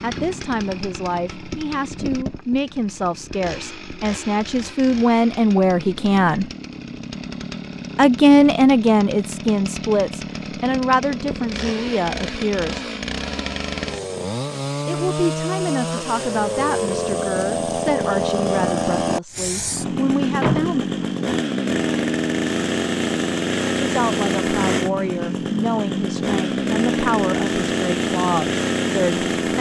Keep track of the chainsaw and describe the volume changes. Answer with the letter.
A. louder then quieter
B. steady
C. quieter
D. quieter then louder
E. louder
E.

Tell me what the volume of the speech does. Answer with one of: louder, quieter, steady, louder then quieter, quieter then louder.
louder then quieter.